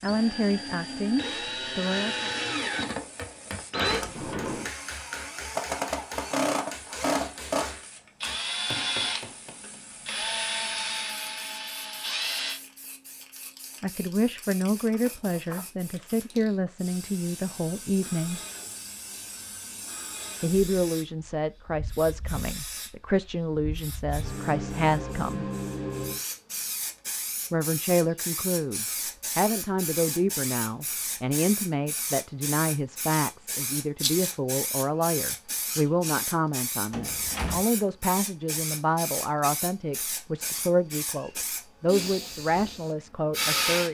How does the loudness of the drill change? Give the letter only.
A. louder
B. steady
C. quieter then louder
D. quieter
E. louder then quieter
B.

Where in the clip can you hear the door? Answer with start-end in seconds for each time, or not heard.
3.9-4.8, 14.9-15.7, 36.9-37.6.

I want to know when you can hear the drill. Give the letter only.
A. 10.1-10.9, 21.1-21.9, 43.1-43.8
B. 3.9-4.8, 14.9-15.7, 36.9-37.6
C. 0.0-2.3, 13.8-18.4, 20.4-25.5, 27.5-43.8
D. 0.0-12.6
D.